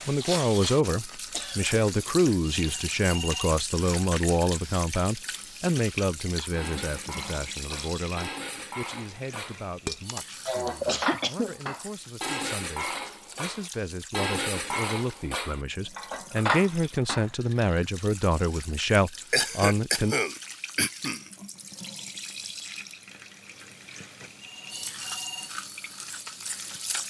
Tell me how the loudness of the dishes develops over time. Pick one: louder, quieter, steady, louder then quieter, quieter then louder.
louder.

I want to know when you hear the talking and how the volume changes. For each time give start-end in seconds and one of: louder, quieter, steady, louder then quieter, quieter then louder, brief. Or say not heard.
0.1-20.1 quieter then louder.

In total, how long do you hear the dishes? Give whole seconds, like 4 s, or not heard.
11 s.